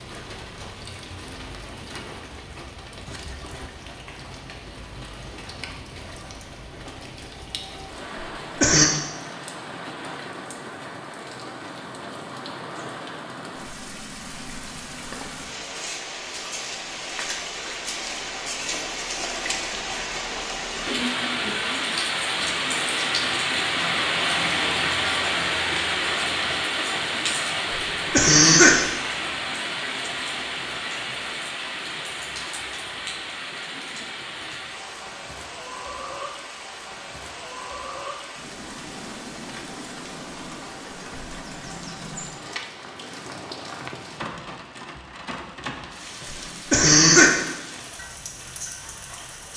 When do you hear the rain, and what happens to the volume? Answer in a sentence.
The rain can be heard from 0.0 to 49.5 s, getting louder then quieter.